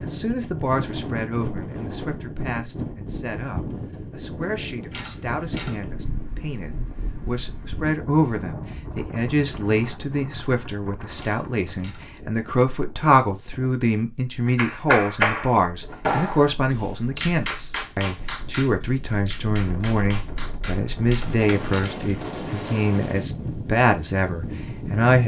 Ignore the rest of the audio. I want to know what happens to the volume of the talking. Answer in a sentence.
The loudness of the talking goes up.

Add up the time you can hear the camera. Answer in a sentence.
The camera can be heard for 3 seconds in total.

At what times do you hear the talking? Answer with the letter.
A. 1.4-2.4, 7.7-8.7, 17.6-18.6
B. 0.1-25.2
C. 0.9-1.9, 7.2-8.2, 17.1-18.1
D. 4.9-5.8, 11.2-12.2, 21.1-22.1
B.